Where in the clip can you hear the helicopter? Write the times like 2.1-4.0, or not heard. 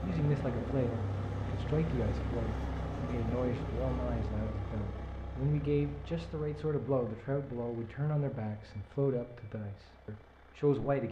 0.0-11.0.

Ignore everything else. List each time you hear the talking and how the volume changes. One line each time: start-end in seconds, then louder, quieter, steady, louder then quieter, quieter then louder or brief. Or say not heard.
0.0-11.0 steady.